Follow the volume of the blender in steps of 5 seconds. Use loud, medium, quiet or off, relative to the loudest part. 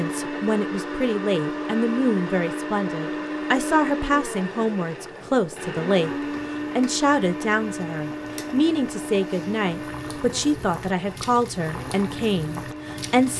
loud, loud, medium.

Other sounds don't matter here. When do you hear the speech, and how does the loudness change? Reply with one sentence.
You can hear the speech from 0.0 to 13.3 s, at a steady volume.